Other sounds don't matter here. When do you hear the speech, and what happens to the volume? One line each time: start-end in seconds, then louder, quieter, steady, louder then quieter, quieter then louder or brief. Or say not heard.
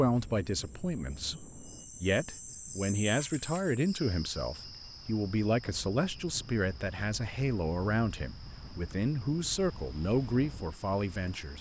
0.0-11.5 steady.